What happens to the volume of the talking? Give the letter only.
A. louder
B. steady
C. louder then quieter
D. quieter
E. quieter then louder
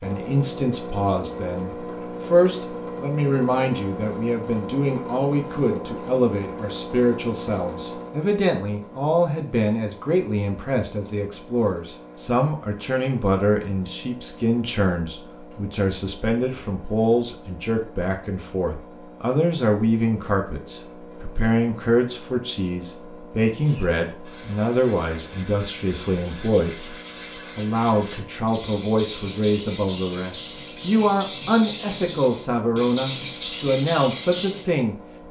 B.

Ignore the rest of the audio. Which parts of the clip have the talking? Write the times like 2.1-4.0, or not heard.
0.0-35.2.